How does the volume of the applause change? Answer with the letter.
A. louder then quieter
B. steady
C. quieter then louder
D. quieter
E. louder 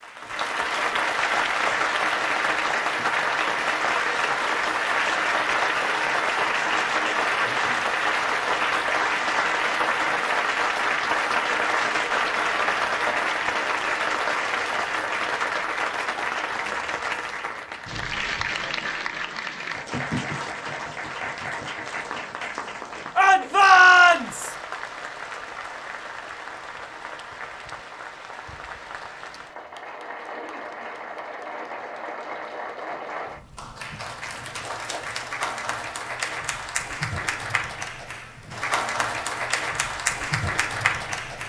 C.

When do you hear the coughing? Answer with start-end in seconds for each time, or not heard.
not heard.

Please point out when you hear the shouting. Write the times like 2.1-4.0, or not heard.
23.1-24.6.